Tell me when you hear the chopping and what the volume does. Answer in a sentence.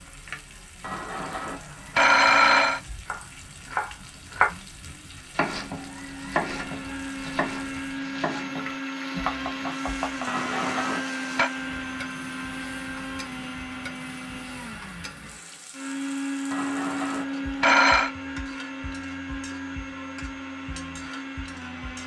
You can hear the chopping from 3.0 to 10.3 s, getting quieter.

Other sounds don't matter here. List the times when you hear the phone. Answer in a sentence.
You can hear the phone from 0.8 to 2.8 s, from 10.2 to 11.5 s and from 16.5 to 18.1 s.